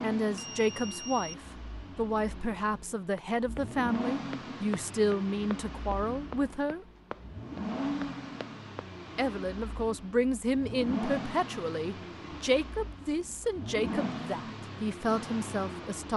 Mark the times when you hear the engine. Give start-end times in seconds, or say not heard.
0.0-16.1.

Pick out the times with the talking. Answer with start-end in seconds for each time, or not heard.
0.0-6.8, 9.2-16.1.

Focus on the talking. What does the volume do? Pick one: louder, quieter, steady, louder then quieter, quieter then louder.
steady.